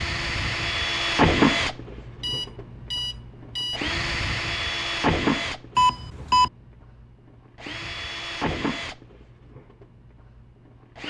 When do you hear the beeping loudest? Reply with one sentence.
The volume of the beeping peaks at 6 seconds.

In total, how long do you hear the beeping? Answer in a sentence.
You can hear the beeping for 2 seconds altogether.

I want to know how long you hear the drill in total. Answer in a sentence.
You can hear the drill for 11 seconds altogether.